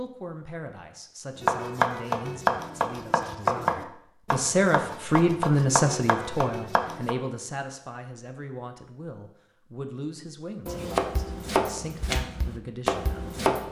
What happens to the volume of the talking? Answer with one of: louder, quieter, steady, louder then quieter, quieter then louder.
louder then quieter.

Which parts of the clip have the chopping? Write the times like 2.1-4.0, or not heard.
1.4-7.2, 10.7-13.6.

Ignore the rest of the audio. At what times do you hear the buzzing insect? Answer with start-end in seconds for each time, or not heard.
not heard.